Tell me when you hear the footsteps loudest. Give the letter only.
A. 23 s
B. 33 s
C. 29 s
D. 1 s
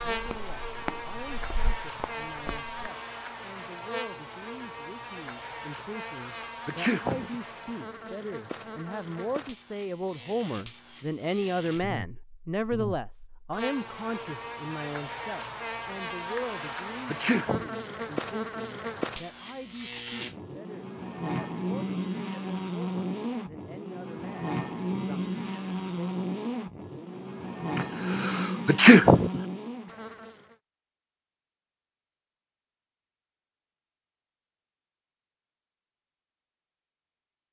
D.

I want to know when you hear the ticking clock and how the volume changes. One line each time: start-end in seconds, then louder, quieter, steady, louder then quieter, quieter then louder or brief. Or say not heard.
not heard.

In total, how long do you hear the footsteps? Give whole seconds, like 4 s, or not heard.
3 s.